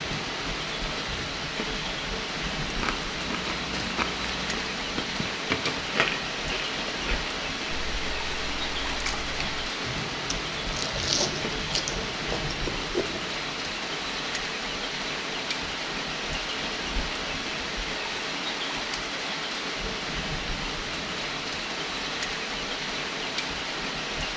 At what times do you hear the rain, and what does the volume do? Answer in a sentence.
The rain can be heard from 0.0 to 24.3 s, at a steady volume.